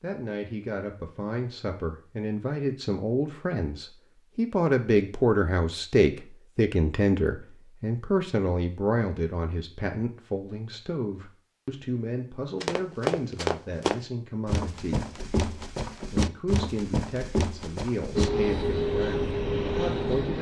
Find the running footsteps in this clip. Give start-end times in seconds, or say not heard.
12.6-18.3.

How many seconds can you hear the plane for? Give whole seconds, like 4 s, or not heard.
2 s.